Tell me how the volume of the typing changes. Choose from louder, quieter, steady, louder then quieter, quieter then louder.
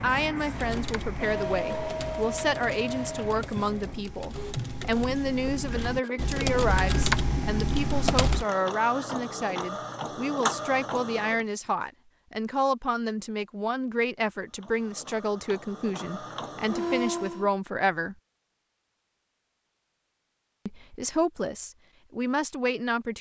louder.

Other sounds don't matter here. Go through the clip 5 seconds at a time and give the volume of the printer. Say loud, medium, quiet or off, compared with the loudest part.
loud, loud, loud, loud, off.